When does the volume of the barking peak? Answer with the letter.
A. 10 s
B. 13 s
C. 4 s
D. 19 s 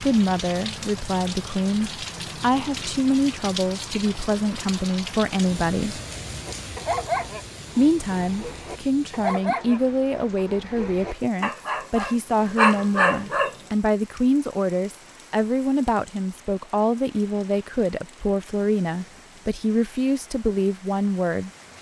B.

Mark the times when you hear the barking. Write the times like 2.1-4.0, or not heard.
6.5-13.5.